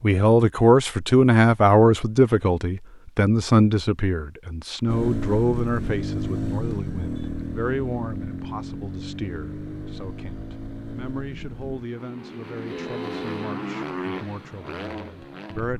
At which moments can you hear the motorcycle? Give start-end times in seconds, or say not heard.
4.8-15.7.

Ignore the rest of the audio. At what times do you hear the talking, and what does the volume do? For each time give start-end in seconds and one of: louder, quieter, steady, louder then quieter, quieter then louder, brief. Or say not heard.
0.0-15.7 quieter.